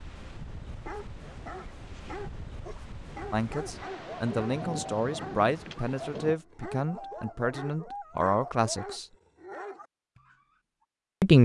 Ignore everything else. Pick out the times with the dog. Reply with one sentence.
The dog can be heard from 0.7 to 10.4 s.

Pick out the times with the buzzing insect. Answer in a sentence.
You can't hear the buzzing insect here.